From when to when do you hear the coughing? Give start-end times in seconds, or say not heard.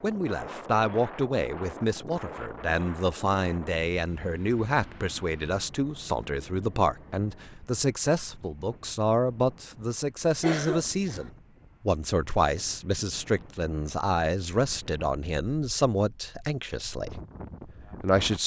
10.4-11.3.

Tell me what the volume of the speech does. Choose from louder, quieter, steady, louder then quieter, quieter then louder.
steady.